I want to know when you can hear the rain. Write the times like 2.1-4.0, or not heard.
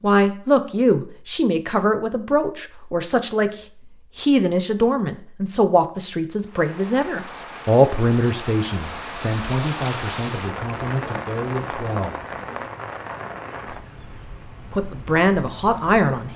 6.5-16.3.